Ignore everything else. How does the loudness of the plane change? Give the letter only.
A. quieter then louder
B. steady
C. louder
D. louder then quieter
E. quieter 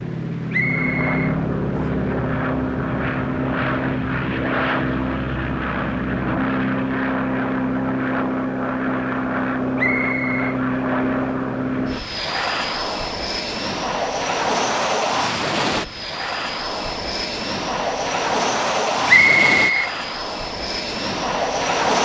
B.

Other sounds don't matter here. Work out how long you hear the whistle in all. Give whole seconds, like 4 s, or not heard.
3 s.